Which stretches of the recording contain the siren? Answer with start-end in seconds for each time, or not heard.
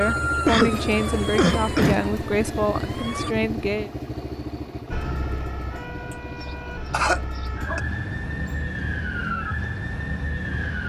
0.0-3.4, 4.9-10.8.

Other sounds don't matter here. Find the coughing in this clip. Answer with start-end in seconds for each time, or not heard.
0.5-2.0, 6.4-7.8.